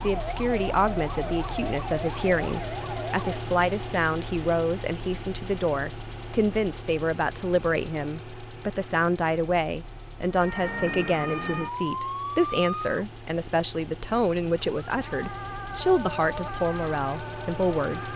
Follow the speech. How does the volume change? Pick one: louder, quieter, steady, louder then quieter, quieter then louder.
steady.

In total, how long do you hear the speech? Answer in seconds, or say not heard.
18 s.